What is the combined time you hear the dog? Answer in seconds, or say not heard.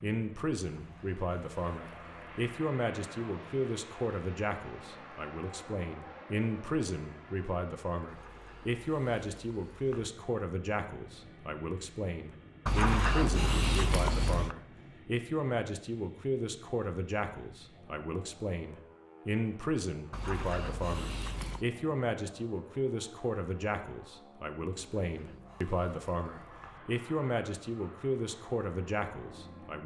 9 s.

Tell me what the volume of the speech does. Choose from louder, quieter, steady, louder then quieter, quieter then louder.
steady.